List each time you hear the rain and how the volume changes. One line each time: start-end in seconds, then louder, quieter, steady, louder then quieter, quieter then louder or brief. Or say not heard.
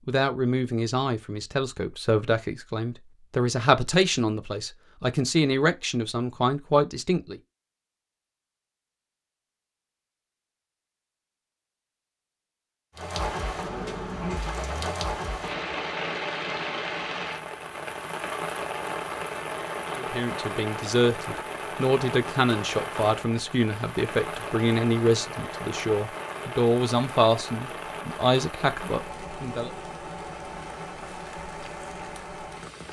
12.9-32.8 quieter.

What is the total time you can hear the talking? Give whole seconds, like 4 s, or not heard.
17 s.